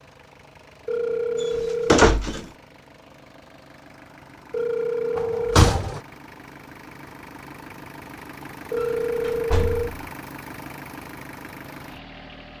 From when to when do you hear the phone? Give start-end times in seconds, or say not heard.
0.8-2.1, 4.5-5.7, 8.7-10.0.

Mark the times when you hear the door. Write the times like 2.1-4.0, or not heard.
1.4-2.5, 5.2-6.0, 8.8-9.8.